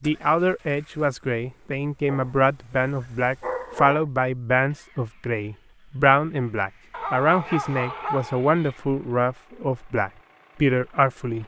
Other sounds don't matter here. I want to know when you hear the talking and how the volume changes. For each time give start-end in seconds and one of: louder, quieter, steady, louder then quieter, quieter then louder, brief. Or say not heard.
0.0-11.4 steady.